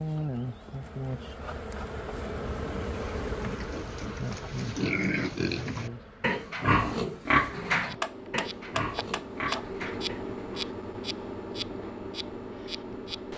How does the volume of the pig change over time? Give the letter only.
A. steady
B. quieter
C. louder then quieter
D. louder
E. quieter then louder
C.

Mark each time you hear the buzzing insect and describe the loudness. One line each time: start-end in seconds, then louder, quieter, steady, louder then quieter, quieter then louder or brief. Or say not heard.
0.0-13.3 quieter then louder.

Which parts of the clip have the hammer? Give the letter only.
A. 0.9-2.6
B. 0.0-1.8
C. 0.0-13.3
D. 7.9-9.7
D.